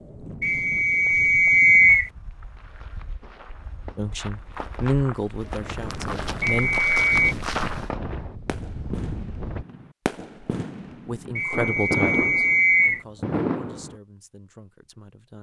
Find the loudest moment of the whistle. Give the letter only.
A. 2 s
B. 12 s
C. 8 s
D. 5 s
A.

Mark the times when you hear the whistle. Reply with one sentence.
You can hear the whistle from 0.4 to 2.1 s, from 6.4 to 7.3 s and from 11.3 to 13.0 s.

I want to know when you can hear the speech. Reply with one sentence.
The speech can be heard from 4.0 to 6.7 s and from 10.9 to 15.3 s.